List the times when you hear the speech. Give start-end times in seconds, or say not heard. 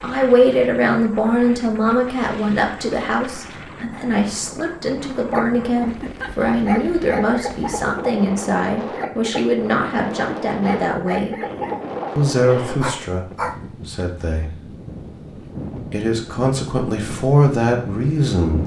0.0-11.3, 12.2-14.6, 15.8-18.6.